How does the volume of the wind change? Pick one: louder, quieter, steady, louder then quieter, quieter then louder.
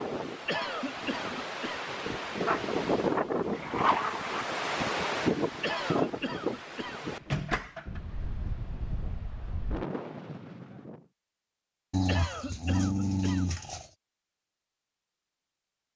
louder then quieter.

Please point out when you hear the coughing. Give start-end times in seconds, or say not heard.
0.5-2.1, 5.6-7.1, 12.1-13.7.